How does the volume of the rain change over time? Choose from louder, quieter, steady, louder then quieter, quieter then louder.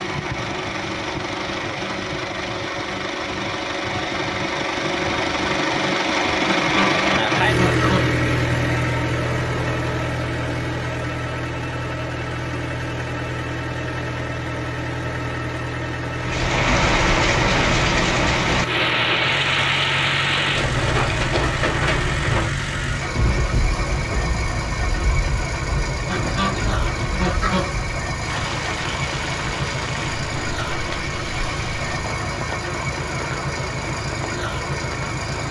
quieter.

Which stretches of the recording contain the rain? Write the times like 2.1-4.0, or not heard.
16.1-35.4.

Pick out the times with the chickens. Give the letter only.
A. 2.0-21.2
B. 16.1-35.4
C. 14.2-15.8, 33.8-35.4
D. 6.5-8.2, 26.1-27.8
D.